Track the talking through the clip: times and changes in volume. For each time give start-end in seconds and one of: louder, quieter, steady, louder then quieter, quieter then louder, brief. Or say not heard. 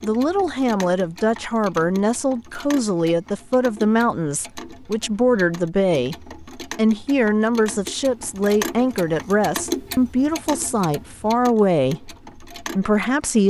0.0-13.4 steady.